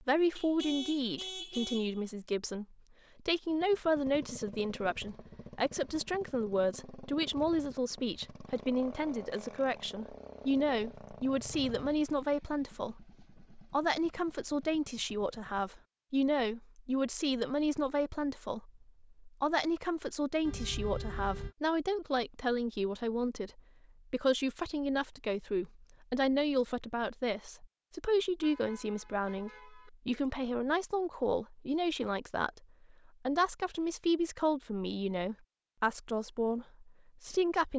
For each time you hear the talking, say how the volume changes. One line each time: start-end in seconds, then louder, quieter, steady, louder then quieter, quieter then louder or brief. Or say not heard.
0.1-37.7 steady.